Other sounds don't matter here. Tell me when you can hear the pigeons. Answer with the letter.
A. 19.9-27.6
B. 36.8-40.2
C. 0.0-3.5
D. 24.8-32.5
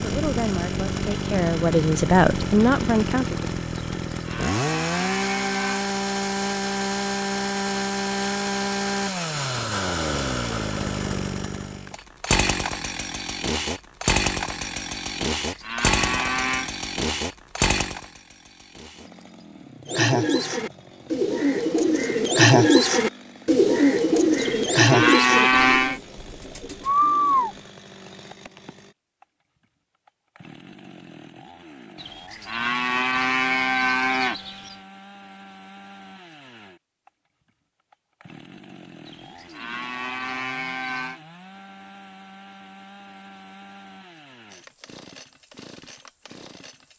A.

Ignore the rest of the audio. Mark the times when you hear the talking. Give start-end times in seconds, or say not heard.
0.0-3.5.